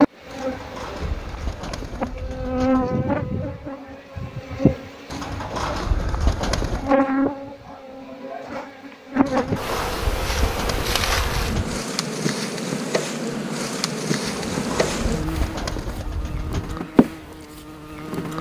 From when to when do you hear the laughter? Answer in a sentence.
You can't hear the laughter here.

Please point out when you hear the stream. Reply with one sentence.
The stream can't be heard in this clip.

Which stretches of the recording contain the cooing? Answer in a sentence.
The cooing can be heard from 0.3 to 2.9 s, from 5.1 to 7.0 s, from 9.2 to 11.8 s and from 14.2 to 16.8 s.